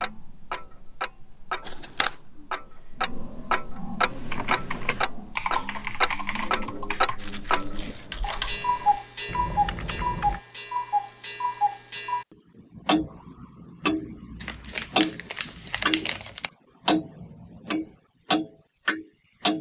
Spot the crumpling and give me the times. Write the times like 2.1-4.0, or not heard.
1.6-2.1, 7.2-8.1, 14.4-16.5.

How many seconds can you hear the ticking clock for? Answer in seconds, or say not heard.
19 s.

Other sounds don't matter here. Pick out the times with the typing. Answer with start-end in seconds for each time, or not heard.
4.0-10.4.